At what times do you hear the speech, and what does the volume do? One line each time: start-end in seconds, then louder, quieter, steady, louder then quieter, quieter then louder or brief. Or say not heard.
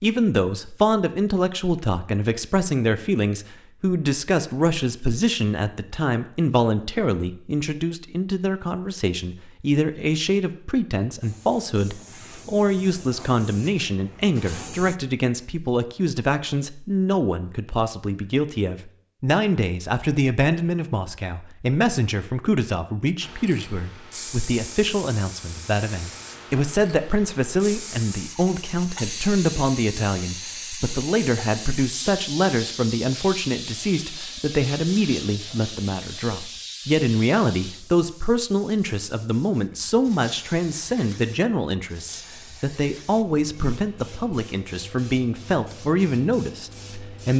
0.0-47.3 steady.